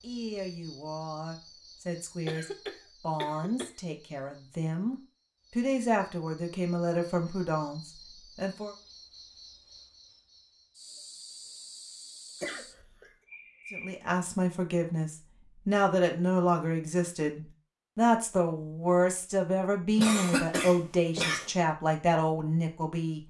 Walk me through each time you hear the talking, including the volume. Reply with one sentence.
The talking can be heard from 0.0 to 8.8 s, getting louder; and from 13.7 to 23.2 s, at a steady volume.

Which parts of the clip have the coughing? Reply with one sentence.
You can hear the coughing from 2.2 to 3.8 s, from 12.4 to 13.1 s and from 19.9 to 21.5 s.